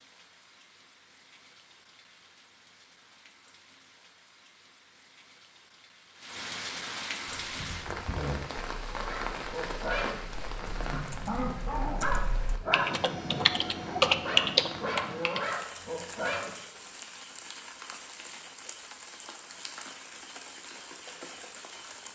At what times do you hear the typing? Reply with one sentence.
The typing can be heard from 7.4 to 15.4 s.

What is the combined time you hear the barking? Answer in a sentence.
The barking can be heard for 8 seconds in total.